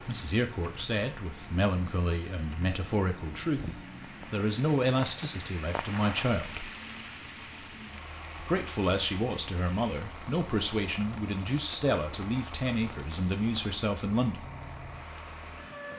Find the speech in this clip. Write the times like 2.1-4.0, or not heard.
0.1-3.7, 4.3-6.7, 8.4-14.4.